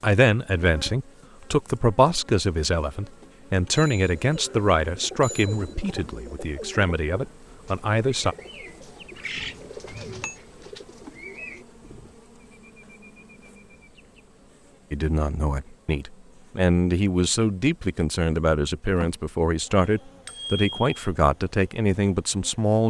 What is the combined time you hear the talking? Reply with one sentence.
You can hear the talking for 16 seconds altogether.